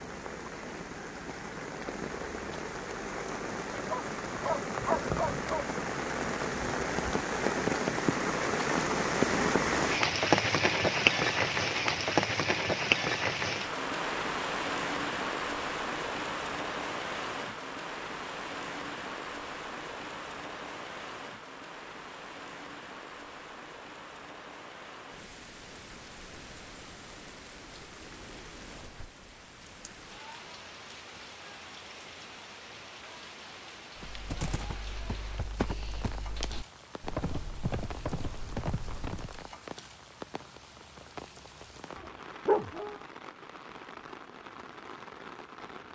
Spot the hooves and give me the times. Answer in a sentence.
You can hear the hooves from 34.0 to 39.5 s.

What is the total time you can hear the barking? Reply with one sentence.
You can hear the barking for 3 seconds altogether.